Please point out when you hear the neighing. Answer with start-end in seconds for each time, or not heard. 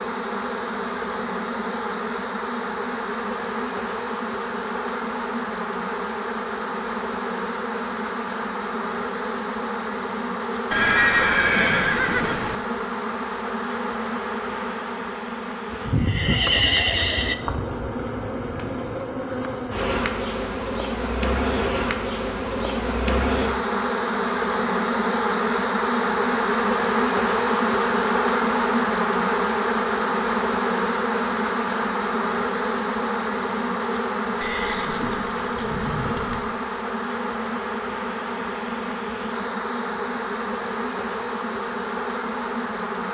10.7-12.6, 15.7-17.4, 34.4-36.4.